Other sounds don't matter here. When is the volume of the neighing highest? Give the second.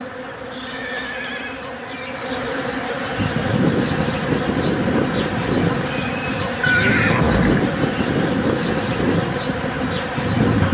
7 s.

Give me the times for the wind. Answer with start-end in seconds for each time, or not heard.
3.1-10.6.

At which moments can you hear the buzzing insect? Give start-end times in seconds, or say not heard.
0.0-10.6.